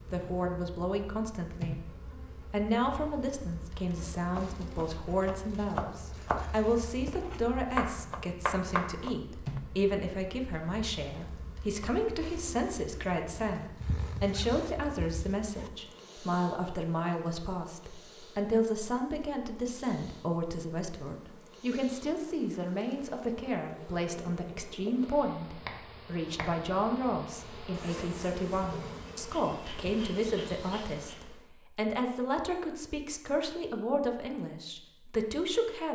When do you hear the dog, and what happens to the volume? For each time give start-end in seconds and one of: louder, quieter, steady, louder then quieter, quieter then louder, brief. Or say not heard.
not heard.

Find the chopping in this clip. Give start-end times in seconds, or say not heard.
4.2-9.6.